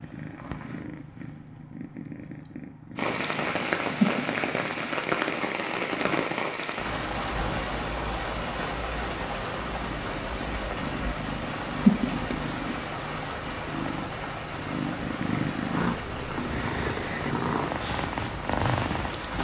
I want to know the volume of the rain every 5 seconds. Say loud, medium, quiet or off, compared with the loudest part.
loud, loud, medium, medium.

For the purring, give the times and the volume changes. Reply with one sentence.
The purring can be heard from 0.0 to 19.3 s, getting quieter then louder.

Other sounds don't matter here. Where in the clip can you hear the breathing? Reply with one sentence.
You can't hear the breathing here.